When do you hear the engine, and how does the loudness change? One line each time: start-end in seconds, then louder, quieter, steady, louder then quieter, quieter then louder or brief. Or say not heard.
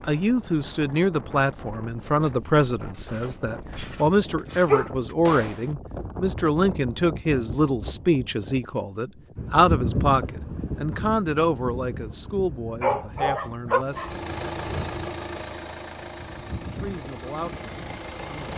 13.8-18.5 quieter.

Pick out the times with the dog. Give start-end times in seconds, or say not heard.
3.1-4.9, 12.8-14.2.